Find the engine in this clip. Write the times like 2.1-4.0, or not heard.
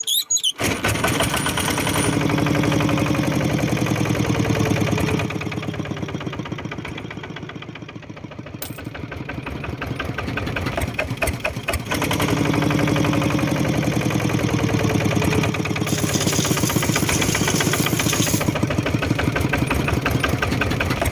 0.0-21.0.